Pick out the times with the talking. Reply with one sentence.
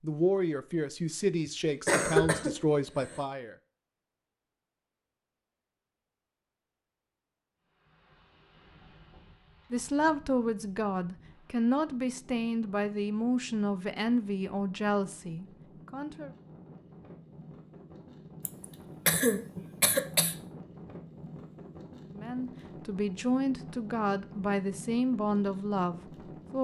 You can hear the talking from 0.0 to 3.5 s, from 9.7 to 16.3 s and from 22.1 to 26.5 s.